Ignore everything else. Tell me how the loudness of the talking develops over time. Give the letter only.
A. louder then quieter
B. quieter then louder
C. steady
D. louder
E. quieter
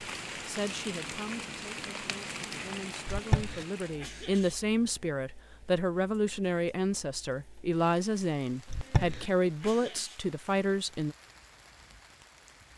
D.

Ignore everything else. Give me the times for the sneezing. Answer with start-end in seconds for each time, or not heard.
3.0-4.5, 8.7-10.2.